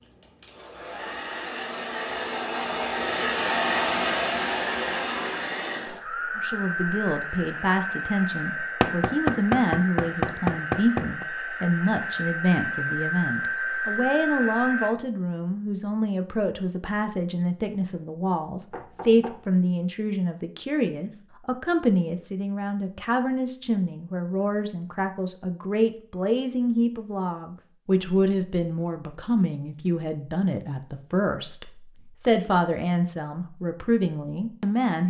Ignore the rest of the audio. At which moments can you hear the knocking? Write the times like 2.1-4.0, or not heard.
8.8-11.2, 18.7-19.4.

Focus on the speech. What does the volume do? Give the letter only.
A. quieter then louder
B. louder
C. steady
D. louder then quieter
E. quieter
C.